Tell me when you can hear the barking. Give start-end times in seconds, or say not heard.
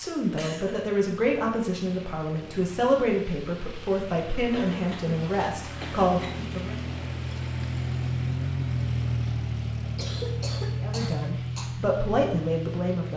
not heard.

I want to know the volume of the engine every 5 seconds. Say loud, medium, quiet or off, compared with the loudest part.
quiet, loud, loud.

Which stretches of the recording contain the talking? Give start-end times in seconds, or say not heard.
0.0-6.8, 10.8-13.1.